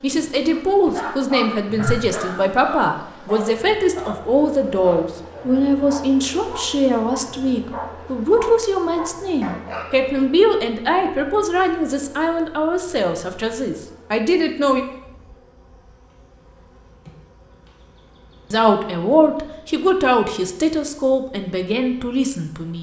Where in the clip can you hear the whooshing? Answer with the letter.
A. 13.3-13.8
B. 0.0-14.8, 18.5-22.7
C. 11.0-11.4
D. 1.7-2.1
D.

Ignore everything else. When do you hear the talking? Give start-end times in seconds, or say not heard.
0.0-14.8, 18.5-22.7.